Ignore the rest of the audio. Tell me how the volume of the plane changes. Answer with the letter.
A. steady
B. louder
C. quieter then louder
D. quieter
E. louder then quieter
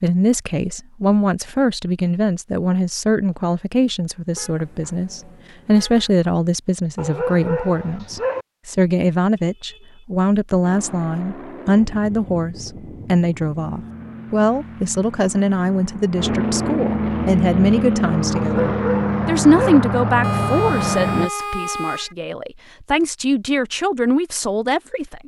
B.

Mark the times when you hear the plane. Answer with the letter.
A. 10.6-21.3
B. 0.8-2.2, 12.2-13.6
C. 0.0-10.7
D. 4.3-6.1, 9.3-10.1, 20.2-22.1
A.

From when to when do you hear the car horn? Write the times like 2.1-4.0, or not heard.
4.3-6.1, 9.3-10.1, 20.2-22.1.